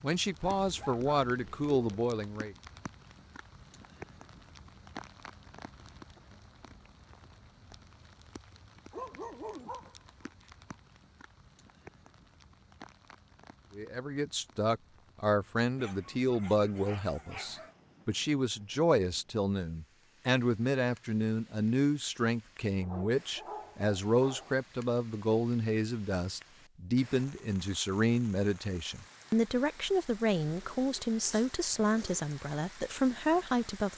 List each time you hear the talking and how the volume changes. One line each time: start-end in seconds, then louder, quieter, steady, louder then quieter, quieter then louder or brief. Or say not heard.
0.0-2.5 brief
13.8-33.9 steady.